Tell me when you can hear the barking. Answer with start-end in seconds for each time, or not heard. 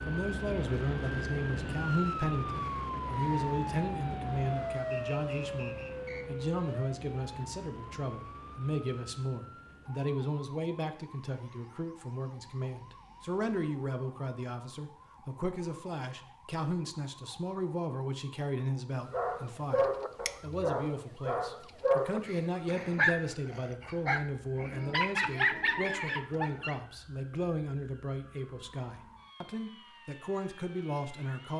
19.1-26.8.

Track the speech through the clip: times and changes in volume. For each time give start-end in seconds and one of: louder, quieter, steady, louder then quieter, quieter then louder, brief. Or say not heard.
0.1-31.5 steady.